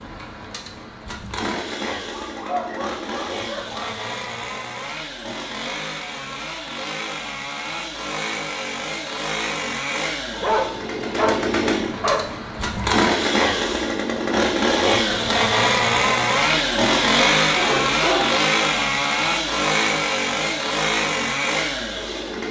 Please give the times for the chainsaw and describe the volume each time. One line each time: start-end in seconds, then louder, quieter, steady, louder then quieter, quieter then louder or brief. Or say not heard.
0.0-22.4 louder.